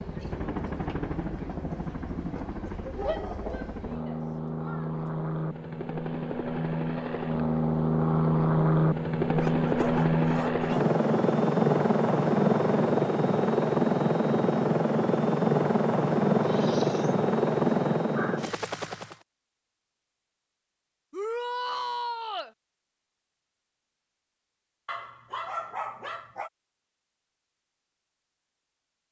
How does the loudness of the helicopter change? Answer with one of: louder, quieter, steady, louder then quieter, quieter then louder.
louder.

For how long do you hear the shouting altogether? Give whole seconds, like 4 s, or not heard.
3 s.